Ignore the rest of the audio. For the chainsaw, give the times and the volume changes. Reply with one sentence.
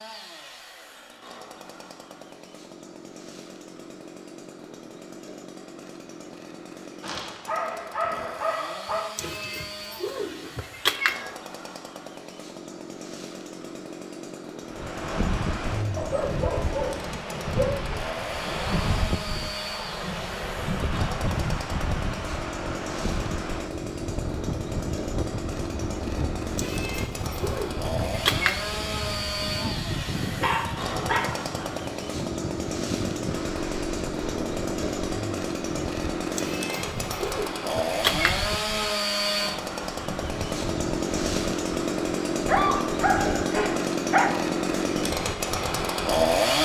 The chainsaw can be heard from 0.0 to 46.5 s, getting louder.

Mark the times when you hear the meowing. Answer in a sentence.
You can hear the meowing from 9.2 to 11.3 s, from 26.6 to 29.0 s and from 36.4 to 38.5 s.